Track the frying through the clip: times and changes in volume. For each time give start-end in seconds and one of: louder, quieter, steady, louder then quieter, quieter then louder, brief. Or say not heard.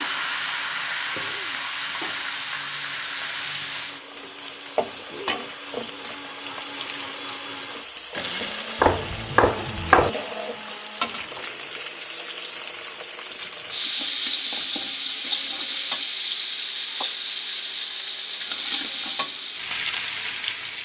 0.0-20.8 steady.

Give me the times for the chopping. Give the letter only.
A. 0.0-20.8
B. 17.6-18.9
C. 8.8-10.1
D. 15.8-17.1
C.